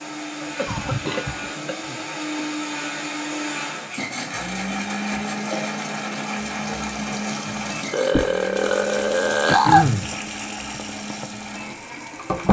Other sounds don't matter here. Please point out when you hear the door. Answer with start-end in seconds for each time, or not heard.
not heard.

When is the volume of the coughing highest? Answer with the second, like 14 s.
10 s.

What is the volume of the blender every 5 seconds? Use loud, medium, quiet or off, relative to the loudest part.
loud, loud, medium.